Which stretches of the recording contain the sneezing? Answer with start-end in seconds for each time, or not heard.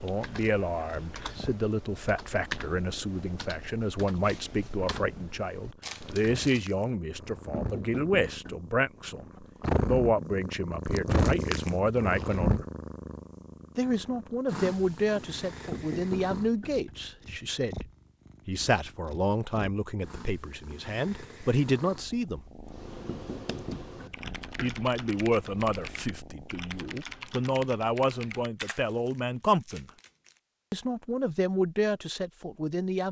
not heard.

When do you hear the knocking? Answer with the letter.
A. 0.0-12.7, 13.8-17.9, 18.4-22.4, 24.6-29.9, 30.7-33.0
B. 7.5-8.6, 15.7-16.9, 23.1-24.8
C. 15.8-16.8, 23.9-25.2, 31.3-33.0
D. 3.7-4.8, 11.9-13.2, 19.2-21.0
B.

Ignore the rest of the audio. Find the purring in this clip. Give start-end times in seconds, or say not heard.
0.2-26.9.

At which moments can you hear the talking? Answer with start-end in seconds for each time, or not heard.
0.0-12.7, 13.8-17.9, 18.4-22.4, 24.6-29.9, 30.7-33.0.